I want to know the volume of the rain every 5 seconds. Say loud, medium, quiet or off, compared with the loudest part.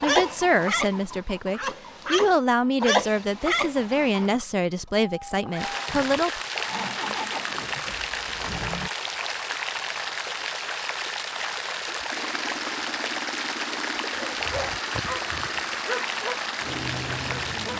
off, loud, loud, loud.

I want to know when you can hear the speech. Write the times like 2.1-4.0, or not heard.
0.0-6.4.